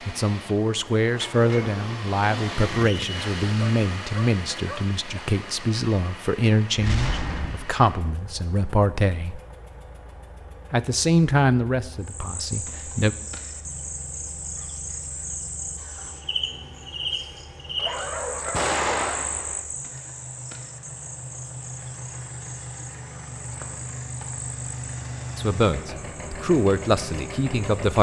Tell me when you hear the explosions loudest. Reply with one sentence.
The loudest moment of the explosions is at 19 seconds.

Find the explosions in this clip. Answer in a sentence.
The explosions can be heard from 6.8 to 7.7 s and from 18.5 to 19.6 s.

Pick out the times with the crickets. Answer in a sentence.
The crickets can be heard from 12.0 to 27.9 s.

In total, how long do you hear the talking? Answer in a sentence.
The talking can be heard for 14 seconds in total.